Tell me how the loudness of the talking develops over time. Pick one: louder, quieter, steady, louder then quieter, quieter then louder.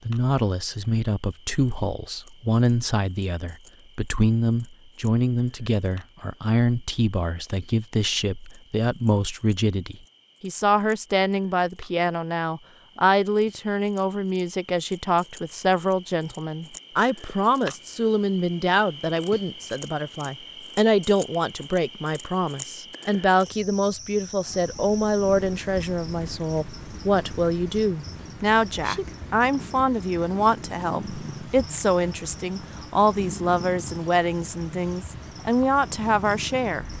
steady.